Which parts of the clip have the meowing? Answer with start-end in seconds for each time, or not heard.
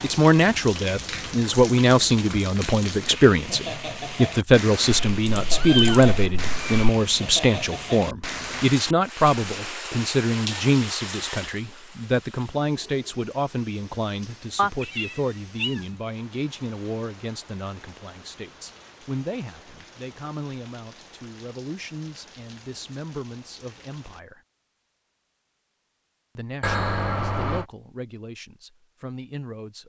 4.9-6.8, 14.6-15.8, 26.6-27.6.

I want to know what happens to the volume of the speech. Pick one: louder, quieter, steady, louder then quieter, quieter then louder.
quieter.